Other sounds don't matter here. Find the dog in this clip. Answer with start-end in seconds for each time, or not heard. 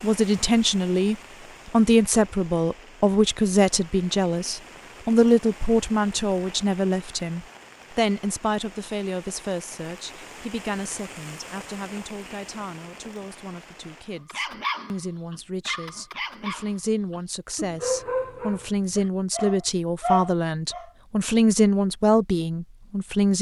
14.2-20.9.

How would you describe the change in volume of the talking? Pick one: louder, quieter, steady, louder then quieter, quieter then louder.
quieter then louder.